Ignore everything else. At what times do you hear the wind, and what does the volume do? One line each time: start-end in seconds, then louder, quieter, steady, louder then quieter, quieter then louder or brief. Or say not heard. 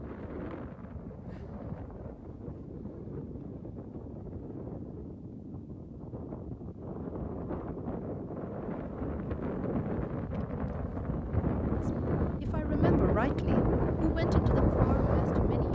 0.0-15.7 louder.